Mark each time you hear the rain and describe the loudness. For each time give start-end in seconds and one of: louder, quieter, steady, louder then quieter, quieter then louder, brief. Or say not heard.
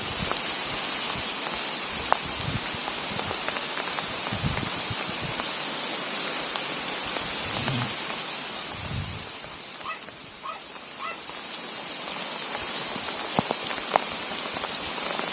0.0-15.2 quieter then louder.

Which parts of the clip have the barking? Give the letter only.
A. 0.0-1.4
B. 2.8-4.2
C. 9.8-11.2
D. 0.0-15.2
C.